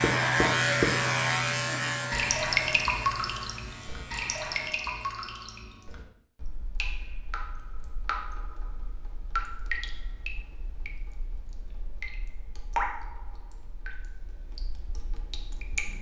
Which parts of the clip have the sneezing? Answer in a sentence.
You can't hear the sneezing here.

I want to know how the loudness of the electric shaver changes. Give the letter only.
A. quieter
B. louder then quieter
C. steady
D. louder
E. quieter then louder
A.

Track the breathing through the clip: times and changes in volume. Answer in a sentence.
The breathing can't be heard in this clip.